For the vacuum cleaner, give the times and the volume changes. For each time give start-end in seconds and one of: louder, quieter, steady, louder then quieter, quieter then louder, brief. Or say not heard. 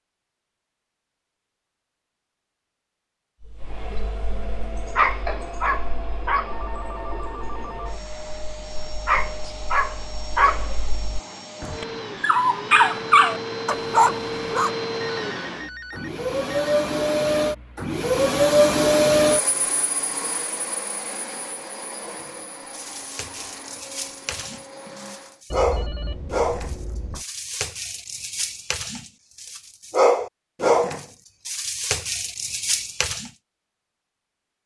3.5-25.4 louder then quieter.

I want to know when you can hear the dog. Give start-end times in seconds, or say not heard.
3.4-14.7, 21.9-33.3.